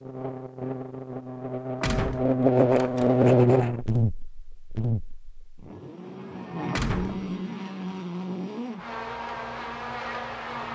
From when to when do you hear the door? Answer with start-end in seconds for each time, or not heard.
1.8-3.1, 6.7-7.3.